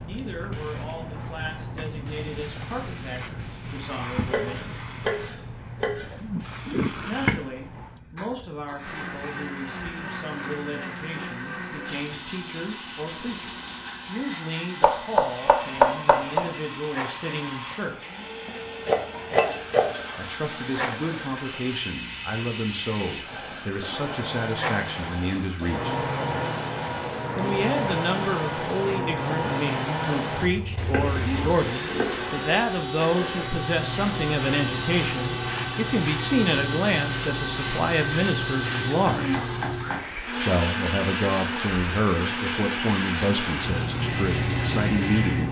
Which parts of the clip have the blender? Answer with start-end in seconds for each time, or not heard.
8.8-45.4.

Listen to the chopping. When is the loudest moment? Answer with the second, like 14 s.
16 s.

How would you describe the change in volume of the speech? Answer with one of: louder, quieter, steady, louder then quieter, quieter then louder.
louder.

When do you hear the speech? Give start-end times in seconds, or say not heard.
0.0-4.8, 7.0-17.9, 20.1-25.9, 27.4-39.4, 40.5-45.4.